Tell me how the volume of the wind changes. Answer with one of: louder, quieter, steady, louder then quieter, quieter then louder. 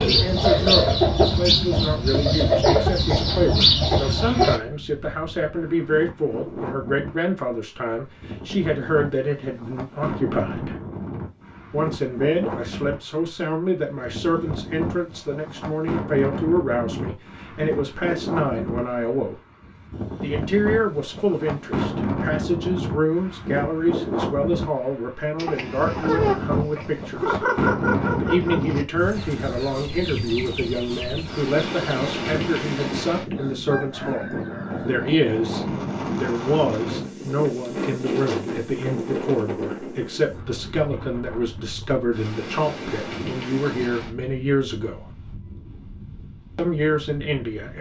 louder then quieter.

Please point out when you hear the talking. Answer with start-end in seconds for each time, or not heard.
0.1-10.8, 11.7-19.4, 20.2-27.4, 28.1-45.0, 46.5-47.7.